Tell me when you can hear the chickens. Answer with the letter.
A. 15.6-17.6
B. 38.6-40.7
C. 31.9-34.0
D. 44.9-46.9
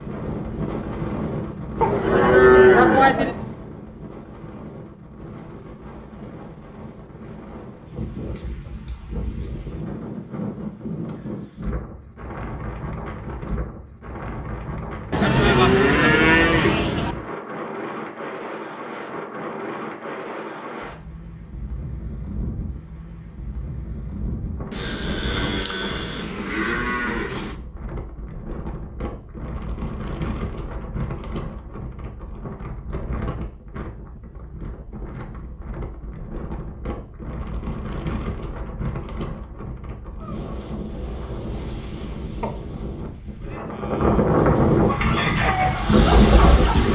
D.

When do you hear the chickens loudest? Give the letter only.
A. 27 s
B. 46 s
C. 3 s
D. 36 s
B.